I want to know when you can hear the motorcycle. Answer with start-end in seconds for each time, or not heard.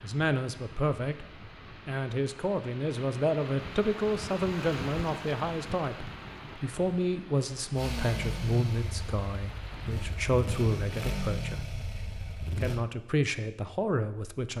7.8-12.8.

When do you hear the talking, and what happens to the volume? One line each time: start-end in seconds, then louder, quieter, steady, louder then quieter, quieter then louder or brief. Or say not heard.
0.0-11.8 steady
12.6-14.5 brief.